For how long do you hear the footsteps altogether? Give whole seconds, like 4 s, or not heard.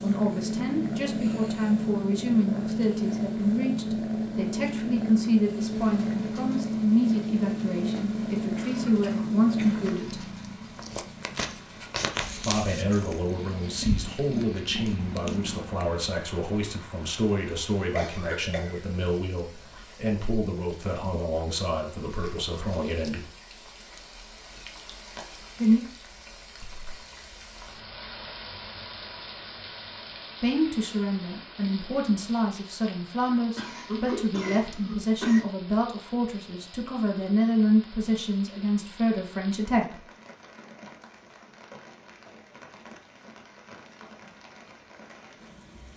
not heard.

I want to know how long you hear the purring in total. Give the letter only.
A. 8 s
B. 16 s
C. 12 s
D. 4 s
B.